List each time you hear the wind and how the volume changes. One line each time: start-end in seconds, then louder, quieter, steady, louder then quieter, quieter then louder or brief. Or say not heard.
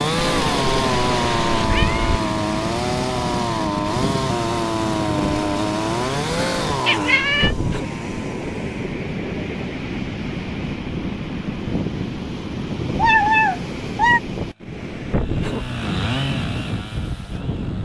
0.0-17.8 steady.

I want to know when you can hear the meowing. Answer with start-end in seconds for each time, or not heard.
0.1-2.2, 6.8-7.5, 12.9-14.2.